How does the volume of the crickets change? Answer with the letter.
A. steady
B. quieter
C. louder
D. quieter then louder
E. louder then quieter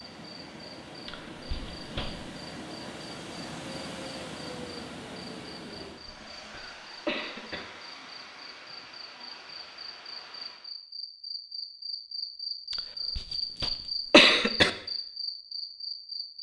C.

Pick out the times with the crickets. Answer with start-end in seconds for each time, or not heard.
0.1-16.3.